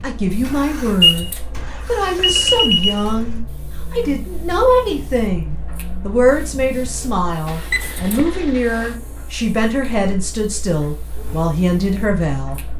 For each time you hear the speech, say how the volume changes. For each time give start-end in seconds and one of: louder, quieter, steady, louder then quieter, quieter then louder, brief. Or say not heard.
0.0-12.6 steady.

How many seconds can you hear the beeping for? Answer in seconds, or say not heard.
3 s.